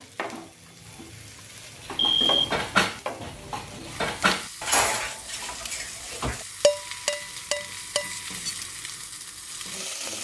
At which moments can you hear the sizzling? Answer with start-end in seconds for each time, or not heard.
0.0-10.1.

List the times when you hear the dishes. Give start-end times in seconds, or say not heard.
1.8-8.7.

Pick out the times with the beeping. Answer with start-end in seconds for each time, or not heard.
1.9-2.5.